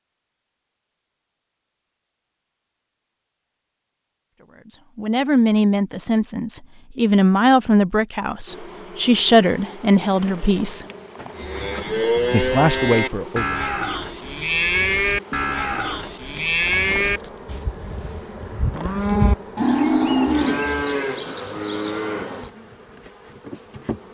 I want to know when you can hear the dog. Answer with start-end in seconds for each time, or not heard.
not heard.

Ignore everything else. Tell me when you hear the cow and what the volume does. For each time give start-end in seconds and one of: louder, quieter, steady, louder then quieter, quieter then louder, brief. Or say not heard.
11.3-22.4 steady.